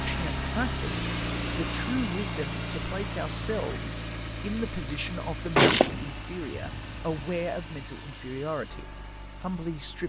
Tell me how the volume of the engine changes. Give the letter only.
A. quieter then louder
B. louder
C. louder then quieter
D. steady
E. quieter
E.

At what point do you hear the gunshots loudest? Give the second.
6 s.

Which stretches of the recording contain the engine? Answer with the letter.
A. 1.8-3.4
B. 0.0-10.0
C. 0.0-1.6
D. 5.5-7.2
B.